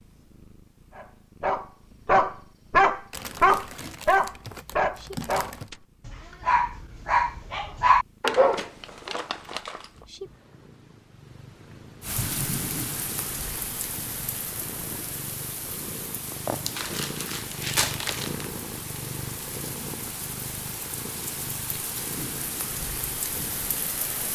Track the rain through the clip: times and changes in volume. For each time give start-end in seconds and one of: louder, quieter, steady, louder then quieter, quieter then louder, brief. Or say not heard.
12.0-24.3 quieter then louder.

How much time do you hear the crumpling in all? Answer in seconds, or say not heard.
6 s.